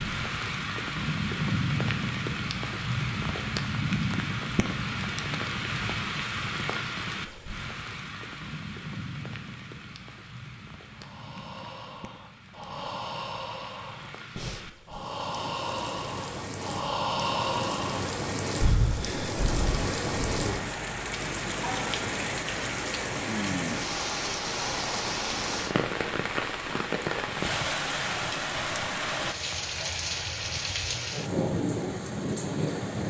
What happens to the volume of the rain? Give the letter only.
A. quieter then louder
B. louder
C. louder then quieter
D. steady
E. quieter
A.